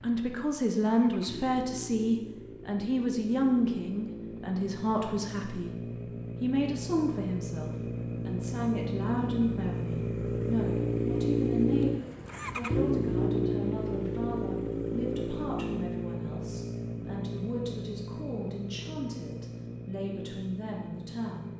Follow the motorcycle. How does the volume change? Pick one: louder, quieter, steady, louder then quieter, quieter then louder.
louder then quieter.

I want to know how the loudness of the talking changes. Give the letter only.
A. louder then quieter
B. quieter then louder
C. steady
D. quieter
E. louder
D.